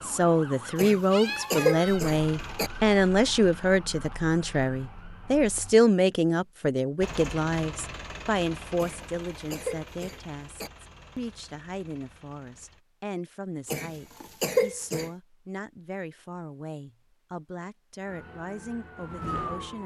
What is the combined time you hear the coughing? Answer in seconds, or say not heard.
5 s.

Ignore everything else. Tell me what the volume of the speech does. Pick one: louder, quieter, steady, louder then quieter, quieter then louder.
quieter.